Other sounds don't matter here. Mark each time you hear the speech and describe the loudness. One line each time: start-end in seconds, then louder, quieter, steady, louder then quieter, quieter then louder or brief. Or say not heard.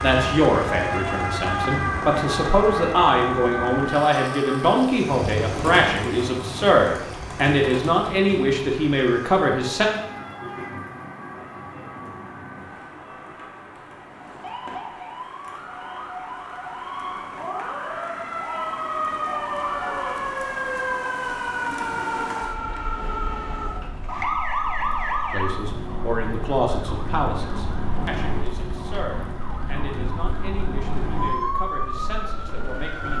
0.0-9.9 steady
25.2-33.1 quieter.